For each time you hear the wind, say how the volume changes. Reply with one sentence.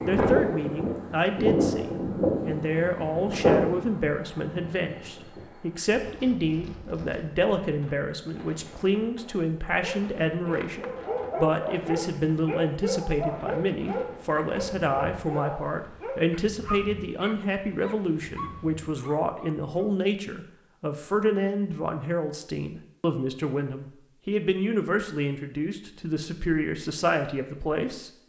You can hear the wind from 0.0 to 18.9 s, getting quieter.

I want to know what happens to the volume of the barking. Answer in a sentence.
The volume of the barking goes down.